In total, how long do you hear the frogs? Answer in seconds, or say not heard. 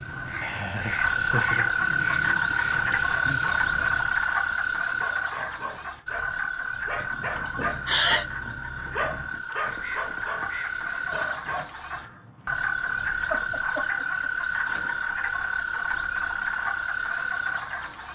18 s.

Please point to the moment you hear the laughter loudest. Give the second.
8 s.